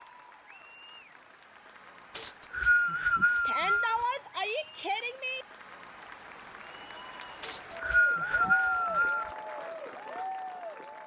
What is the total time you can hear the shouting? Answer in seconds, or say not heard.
2 s.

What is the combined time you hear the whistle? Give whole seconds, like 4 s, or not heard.
4 s.